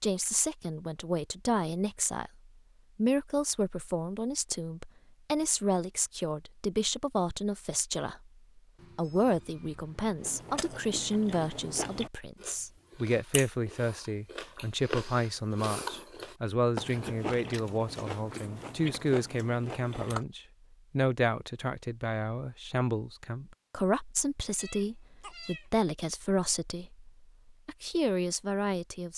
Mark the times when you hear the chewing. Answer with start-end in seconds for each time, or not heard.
10.2-20.2.